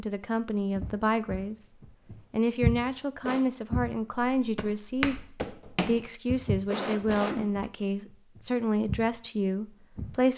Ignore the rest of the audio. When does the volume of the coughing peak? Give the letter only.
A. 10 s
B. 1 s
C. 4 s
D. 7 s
D.